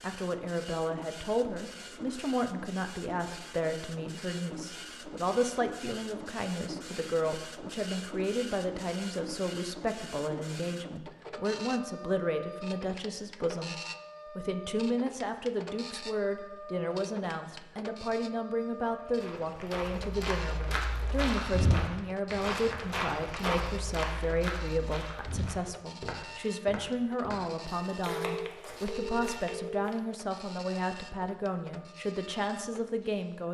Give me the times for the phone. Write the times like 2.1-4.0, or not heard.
28.1-29.9.